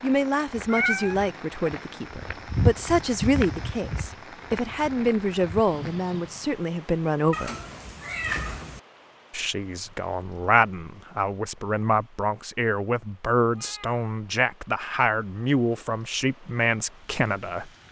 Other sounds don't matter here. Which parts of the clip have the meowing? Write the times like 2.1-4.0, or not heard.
0.7-1.1, 7.3-8.8, 13.5-14.0.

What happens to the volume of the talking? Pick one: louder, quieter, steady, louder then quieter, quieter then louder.
steady.